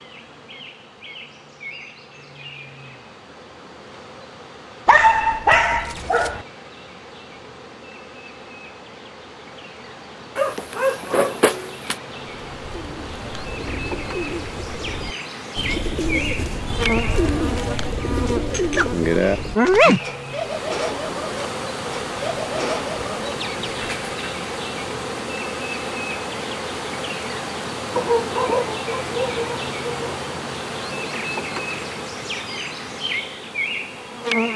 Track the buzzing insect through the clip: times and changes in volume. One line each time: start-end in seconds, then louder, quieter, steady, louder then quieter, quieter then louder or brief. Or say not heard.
0.0-34.5 louder.